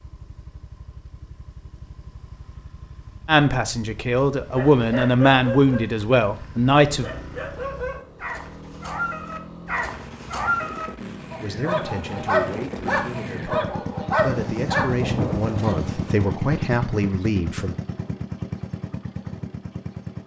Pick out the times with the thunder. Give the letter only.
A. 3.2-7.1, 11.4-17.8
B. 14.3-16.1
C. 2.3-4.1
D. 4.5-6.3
B.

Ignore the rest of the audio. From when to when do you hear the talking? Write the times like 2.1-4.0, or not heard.
3.2-7.1, 11.4-17.8.